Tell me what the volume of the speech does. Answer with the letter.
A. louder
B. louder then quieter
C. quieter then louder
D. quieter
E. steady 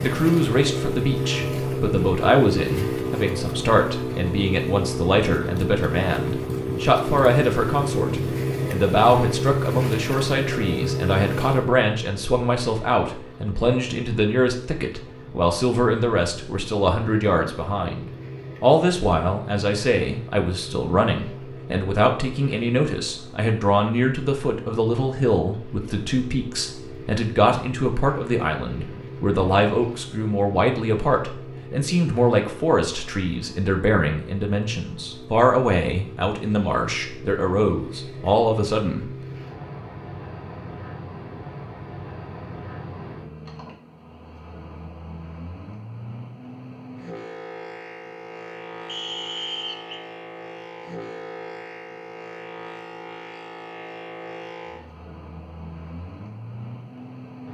E.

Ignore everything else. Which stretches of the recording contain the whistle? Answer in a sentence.
The whistle can be heard from 48.9 to 50.0 s.